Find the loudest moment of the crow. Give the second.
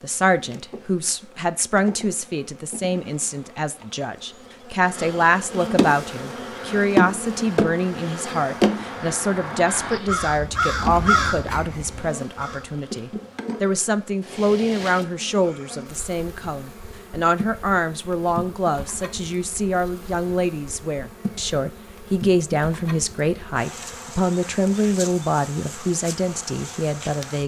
11 s.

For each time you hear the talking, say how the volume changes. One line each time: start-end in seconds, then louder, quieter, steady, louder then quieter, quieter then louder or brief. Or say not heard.
0.0-27.4 steady.